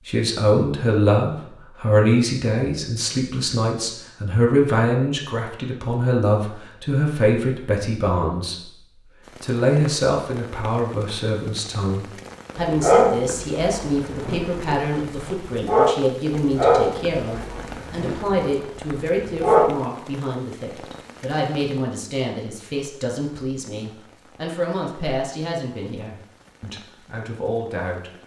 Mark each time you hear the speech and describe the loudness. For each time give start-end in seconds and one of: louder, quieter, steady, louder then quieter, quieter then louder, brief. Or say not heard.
0.1-28.2 quieter.